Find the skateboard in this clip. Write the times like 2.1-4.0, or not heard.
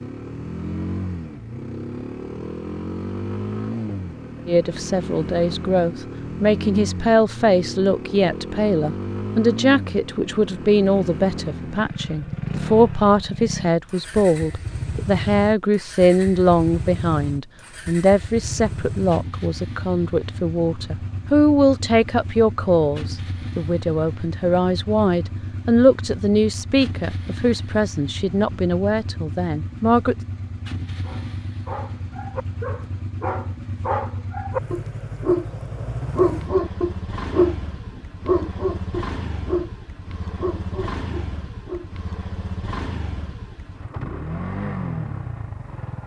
not heard.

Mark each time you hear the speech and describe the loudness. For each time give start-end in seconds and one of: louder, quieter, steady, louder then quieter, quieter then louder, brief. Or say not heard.
4.5-30.1 steady.